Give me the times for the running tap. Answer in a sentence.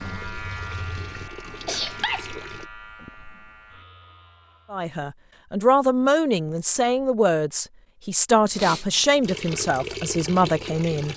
You can hear the running tap from 0.0 to 2.6 s and from 9.2 to 11.1 s.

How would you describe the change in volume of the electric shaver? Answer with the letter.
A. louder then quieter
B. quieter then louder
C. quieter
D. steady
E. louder
C.